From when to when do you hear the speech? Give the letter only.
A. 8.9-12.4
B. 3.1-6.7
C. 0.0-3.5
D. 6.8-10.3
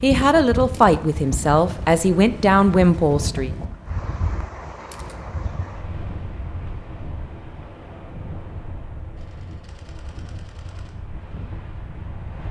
C.